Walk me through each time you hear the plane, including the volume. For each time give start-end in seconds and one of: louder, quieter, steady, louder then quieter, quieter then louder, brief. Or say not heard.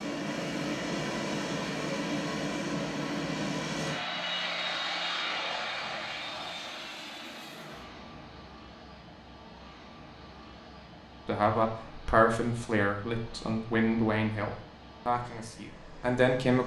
0.0-16.6 quieter.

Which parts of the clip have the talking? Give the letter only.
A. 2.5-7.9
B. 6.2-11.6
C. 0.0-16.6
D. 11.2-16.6
D.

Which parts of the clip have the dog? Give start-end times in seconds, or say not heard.
not heard.